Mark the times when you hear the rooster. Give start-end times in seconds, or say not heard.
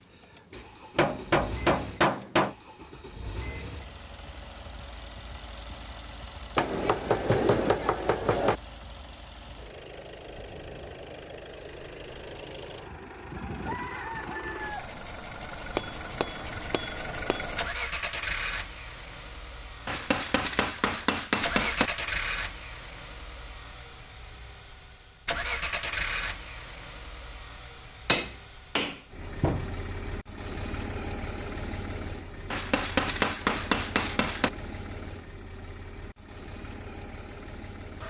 13.3-14.9.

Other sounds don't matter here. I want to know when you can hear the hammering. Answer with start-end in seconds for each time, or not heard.
0.9-2.5, 6.5-8.6, 15.8-17.4, 19.9-21.9, 28.1-29.7, 32.5-34.5.